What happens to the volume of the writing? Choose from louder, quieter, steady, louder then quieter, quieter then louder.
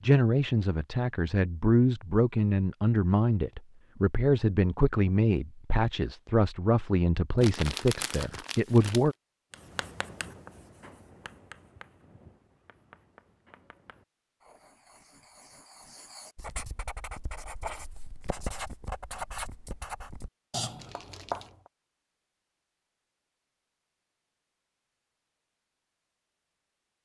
quieter then louder.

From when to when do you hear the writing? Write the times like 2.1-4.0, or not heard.
9.5-21.5.